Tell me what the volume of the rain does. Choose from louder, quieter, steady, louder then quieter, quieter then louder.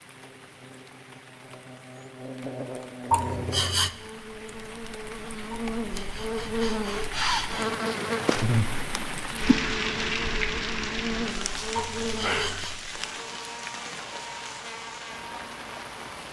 louder then quieter.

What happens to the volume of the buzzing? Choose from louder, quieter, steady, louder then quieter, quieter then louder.
louder then quieter.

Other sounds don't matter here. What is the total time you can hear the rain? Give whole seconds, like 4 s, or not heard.
16 s.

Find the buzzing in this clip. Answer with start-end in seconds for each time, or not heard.
0.0-16.2.